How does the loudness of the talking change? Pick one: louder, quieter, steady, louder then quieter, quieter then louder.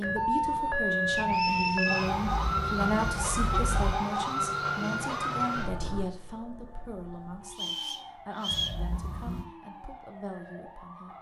quieter.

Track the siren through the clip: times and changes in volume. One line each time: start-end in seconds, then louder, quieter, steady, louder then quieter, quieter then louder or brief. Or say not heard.
0.0-11.1 quieter.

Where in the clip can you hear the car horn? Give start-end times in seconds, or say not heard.
2.0-4.0, 8.5-9.4.